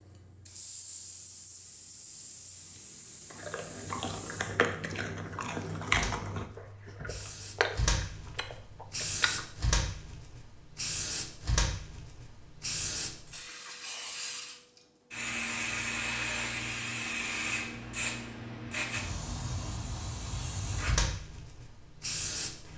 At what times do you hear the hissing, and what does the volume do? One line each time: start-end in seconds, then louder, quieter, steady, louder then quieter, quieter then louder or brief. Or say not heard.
0.0-22.7 louder.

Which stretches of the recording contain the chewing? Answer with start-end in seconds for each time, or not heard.
3.3-9.4.